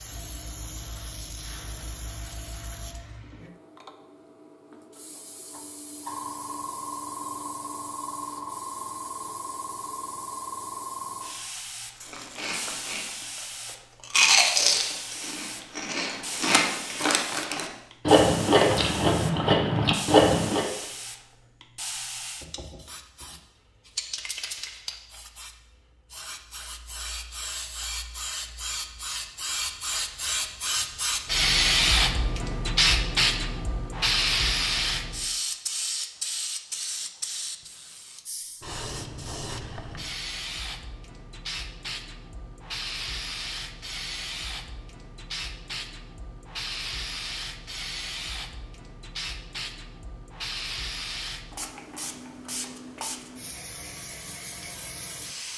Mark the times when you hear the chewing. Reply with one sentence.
The chewing can be heard from 12.0 to 20.6 s.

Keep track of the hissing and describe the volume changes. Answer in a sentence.
The loudness of the hissing goes up, then down.